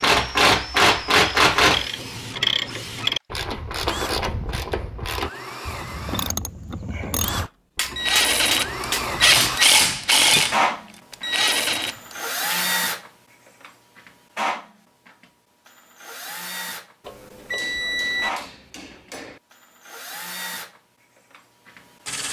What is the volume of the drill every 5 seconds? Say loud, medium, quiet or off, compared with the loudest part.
medium, medium, loud, medium, medium.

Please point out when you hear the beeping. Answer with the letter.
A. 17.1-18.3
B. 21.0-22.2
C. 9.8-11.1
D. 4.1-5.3
A.